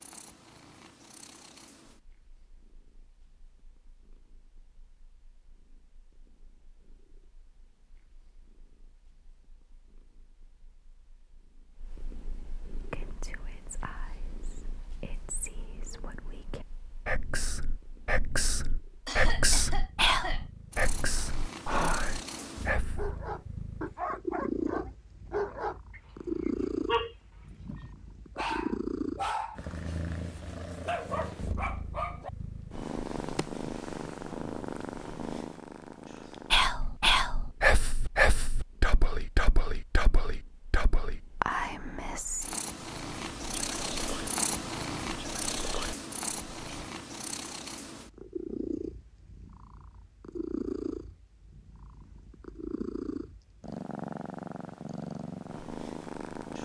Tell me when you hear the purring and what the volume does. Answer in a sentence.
The purring can be heard from 0.0 to 56.6 s, getting louder.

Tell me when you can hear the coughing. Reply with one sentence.
You can hear the coughing from 19.1 to 20.4 s.